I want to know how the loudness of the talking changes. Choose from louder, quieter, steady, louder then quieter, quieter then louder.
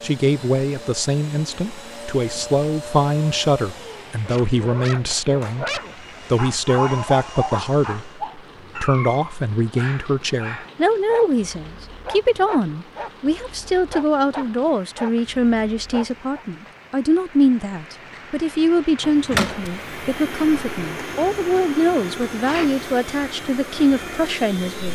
steady.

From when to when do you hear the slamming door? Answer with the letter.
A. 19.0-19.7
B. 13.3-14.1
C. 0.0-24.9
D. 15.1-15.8
A.